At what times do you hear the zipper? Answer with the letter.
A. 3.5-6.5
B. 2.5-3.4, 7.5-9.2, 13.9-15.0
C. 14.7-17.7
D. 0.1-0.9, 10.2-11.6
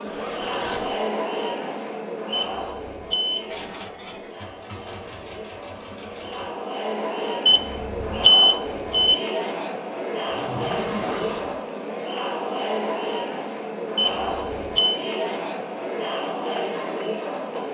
D.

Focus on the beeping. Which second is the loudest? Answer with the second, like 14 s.
8 s.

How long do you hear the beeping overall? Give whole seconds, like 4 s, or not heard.
4 s.